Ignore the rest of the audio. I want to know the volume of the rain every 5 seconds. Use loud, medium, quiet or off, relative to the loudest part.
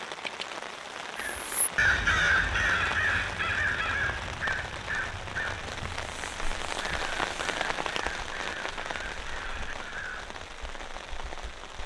loud, loud, medium.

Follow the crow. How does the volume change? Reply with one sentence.
The volume of the crow goes down.